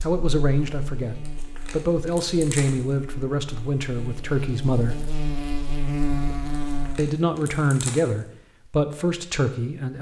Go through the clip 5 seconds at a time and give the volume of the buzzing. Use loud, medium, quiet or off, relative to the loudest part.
medium, loud.